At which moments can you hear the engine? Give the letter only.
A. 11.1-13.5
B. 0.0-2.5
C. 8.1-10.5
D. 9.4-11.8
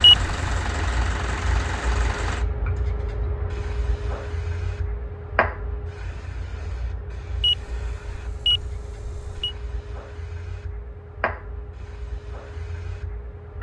B.